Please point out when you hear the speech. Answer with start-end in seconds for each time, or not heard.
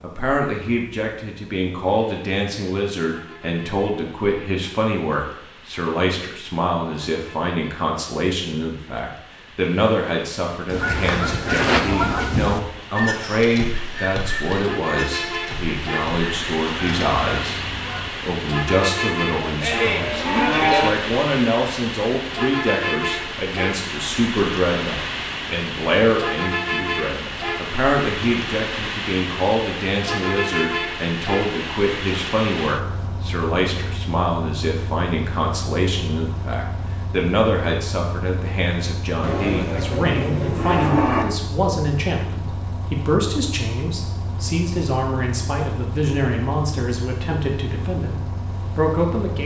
0.0-49.3.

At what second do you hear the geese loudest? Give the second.
12 s.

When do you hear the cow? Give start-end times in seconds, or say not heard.
19.4-20.9, 39.2-41.2.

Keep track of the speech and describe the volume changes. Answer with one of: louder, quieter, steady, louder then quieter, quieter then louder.
steady.